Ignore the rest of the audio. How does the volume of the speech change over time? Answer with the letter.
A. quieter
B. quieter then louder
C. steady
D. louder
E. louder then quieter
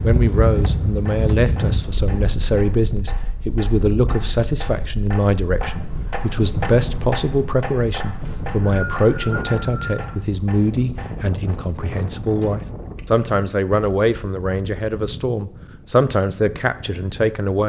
C.